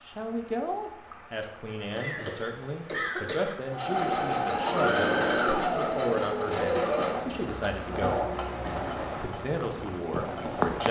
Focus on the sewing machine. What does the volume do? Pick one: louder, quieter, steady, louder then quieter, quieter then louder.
quieter.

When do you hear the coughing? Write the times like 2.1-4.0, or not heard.
1.9-3.6, 8.0-8.8.